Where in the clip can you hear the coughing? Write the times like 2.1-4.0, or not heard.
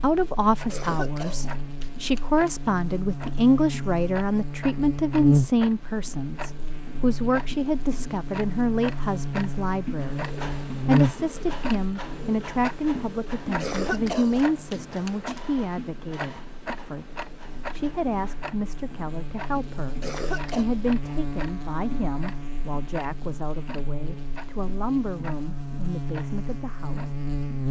0.7-2.7, 13.6-15.4, 20.0-20.6.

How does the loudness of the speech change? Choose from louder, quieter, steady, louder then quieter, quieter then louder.
quieter.